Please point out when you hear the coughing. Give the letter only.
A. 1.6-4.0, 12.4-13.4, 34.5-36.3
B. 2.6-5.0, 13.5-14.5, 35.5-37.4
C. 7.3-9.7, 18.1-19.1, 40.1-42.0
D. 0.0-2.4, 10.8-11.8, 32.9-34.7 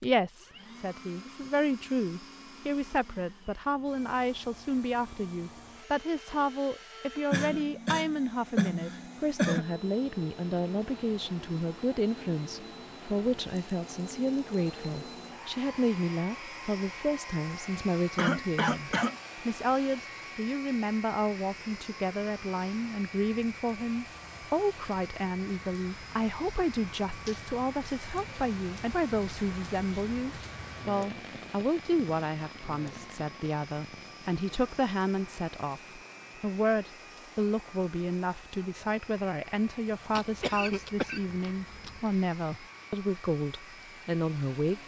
C.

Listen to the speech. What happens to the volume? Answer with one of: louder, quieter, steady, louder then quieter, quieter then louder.
steady.